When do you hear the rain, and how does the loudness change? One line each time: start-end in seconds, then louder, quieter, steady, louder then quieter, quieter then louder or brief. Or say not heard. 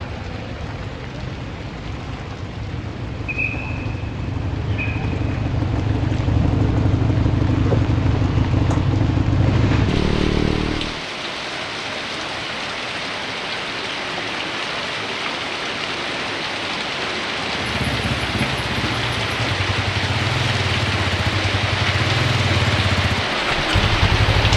0.0-24.5 louder.